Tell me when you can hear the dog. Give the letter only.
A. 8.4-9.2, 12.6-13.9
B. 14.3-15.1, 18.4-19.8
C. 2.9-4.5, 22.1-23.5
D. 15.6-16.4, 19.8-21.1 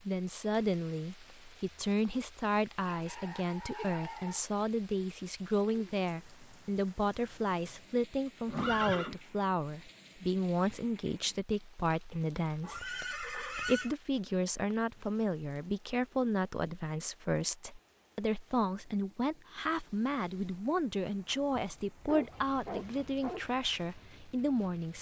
C.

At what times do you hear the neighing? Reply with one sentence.
The neighing can be heard from 8.4 to 9.2 s and from 12.6 to 13.9 s.